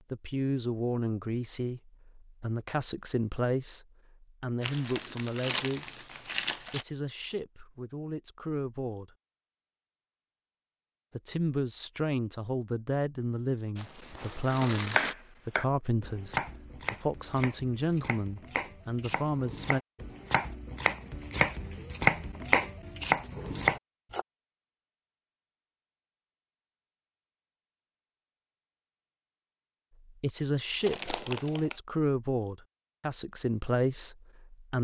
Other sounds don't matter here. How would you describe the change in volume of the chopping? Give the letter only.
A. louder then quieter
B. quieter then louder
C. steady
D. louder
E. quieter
B.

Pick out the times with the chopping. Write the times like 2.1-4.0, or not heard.
14.9-24.2.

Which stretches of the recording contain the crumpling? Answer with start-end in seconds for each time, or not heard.
4.6-6.8, 13.8-15.2, 30.9-31.8.